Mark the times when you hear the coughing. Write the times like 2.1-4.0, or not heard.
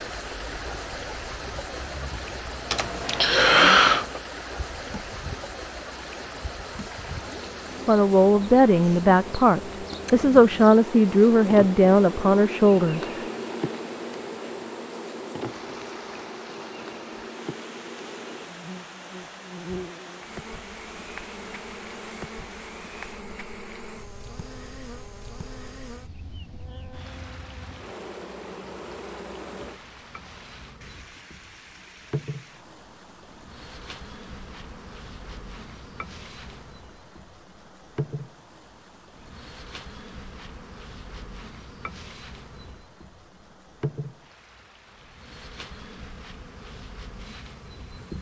2.7-4.2.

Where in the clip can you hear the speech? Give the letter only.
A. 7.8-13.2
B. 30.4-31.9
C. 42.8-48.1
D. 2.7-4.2
A.